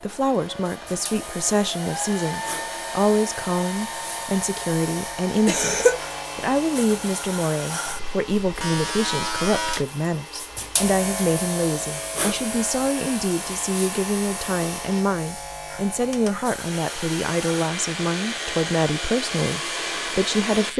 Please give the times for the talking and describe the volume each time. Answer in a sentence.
The talking can be heard from 0.0 to 20.7 s, at a steady volume.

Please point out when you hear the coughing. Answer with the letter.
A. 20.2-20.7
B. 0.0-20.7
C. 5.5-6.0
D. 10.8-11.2
C.